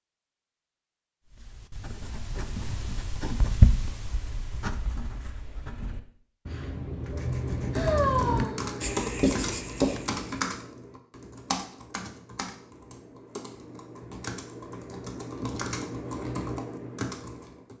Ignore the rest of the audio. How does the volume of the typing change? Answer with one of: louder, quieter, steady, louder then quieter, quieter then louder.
quieter then louder.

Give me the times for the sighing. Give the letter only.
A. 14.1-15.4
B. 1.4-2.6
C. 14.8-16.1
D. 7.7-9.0
D.